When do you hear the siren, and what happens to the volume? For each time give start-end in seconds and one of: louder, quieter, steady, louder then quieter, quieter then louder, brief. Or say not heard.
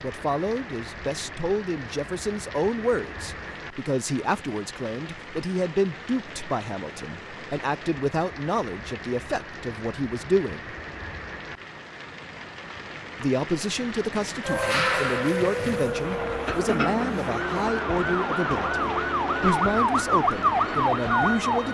14.4-21.6 quieter then louder.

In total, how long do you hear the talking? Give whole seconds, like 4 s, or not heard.
19 s.